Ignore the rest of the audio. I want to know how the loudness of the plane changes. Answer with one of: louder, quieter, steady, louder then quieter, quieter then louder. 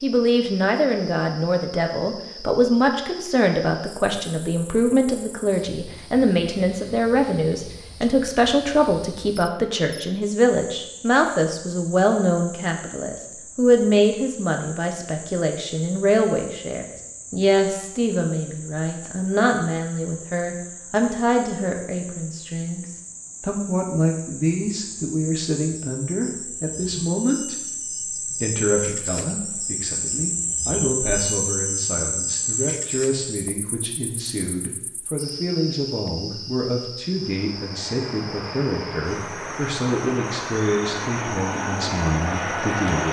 louder.